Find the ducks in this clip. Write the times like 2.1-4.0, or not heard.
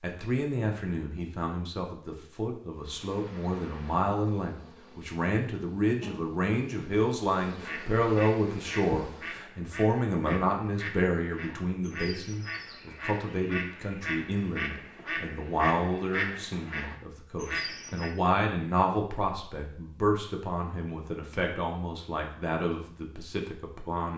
7.6-18.1.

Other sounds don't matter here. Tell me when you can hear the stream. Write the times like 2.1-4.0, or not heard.
not heard.